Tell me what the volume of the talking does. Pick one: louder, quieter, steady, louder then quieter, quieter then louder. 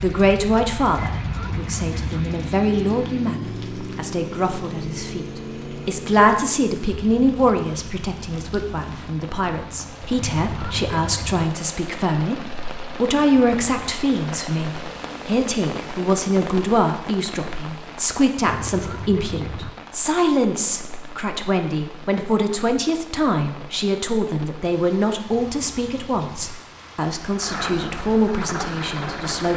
steady.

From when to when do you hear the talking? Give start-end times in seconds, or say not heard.
0.0-29.5.